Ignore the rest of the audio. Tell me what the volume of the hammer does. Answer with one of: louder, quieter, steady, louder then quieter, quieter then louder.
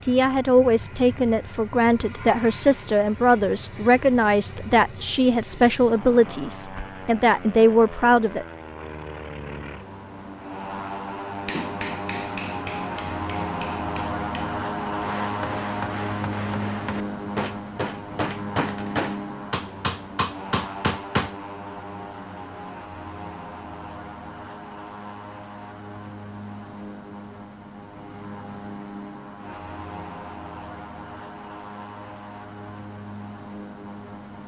louder.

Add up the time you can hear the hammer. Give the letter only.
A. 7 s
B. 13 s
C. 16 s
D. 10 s
D.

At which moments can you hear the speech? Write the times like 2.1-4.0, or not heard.
0.1-8.4.